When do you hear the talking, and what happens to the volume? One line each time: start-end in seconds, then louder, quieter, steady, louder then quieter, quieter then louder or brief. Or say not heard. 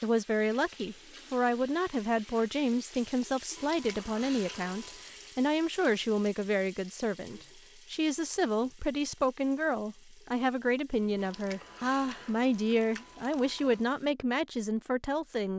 0.0-15.5 steady.